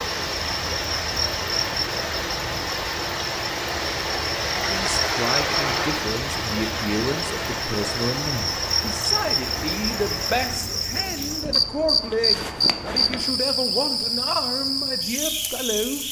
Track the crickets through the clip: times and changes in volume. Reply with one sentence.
You can hear the crickets from 0.0 to 16.0 s, getting louder.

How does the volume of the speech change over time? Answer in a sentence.
The loudness of the speech stays about the same.